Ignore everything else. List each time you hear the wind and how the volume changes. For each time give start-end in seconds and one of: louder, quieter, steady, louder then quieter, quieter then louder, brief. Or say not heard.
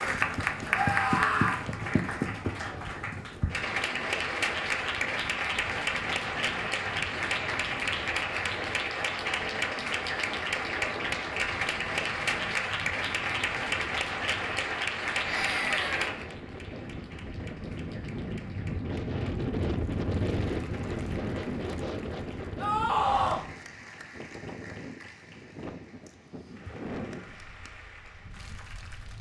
0.0-29.1 louder then quieter.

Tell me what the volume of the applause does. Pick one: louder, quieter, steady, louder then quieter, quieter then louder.
quieter.